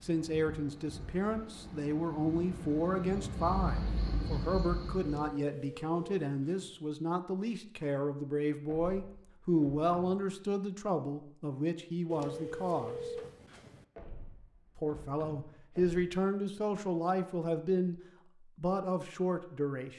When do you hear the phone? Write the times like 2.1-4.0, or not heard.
5.0-6.8, 12.1-13.8.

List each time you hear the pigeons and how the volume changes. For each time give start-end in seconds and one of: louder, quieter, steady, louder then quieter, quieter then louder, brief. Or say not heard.
not heard.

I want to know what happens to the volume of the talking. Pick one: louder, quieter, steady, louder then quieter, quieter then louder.
steady.